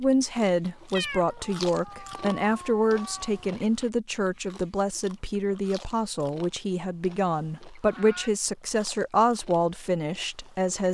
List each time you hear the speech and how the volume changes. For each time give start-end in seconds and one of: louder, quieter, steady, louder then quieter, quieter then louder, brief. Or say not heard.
0.0-10.8 steady.